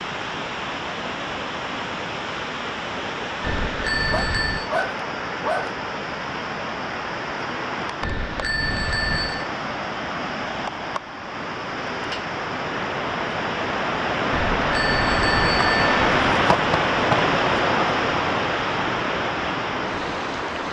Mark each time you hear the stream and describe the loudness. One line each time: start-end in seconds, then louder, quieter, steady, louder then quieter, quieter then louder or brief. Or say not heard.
0.0-20.6 louder.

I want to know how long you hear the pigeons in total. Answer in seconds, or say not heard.
not heard.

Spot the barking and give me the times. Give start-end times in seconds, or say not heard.
4.1-5.8.